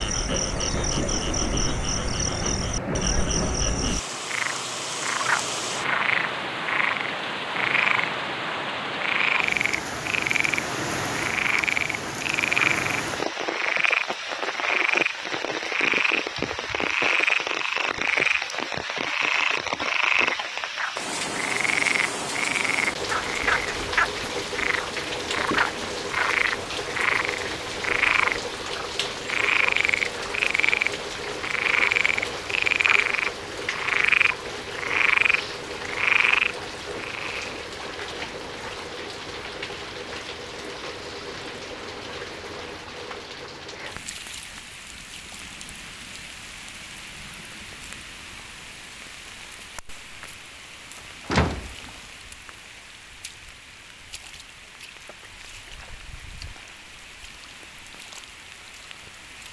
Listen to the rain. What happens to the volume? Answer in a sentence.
The volume of the rain goes down.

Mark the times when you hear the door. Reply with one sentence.
You can hear the door from 51.2 to 51.9 s.